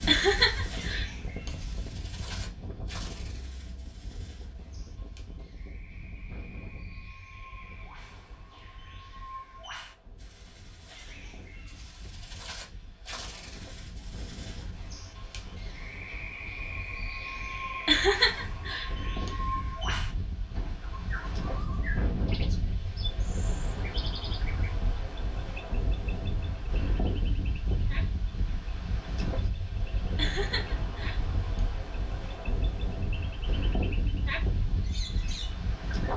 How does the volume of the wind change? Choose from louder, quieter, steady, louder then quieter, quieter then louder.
quieter then louder.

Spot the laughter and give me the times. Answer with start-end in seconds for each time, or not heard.
0.1-1.5, 17.9-19.3, 30.1-31.6.